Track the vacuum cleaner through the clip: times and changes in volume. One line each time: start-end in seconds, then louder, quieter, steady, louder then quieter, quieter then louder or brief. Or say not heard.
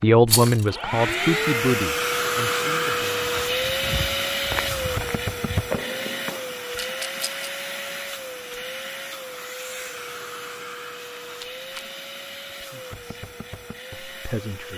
0.0-14.7 quieter.